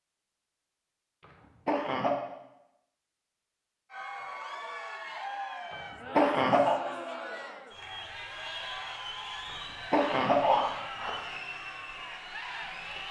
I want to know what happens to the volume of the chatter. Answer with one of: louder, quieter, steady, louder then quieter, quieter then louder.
steady.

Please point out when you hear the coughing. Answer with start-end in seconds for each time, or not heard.
1.6-2.1, 5.7-6.8, 9.9-11.2.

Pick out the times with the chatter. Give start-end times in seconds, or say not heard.
3.9-13.0.